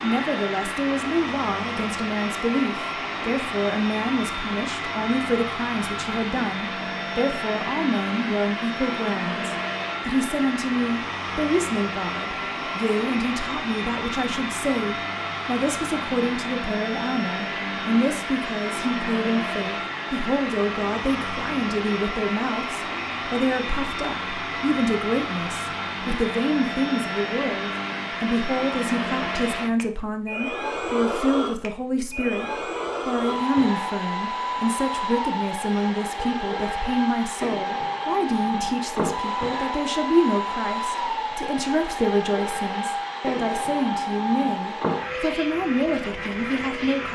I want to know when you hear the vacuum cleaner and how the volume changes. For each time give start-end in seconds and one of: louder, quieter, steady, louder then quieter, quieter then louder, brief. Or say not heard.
0.0-47.1 steady.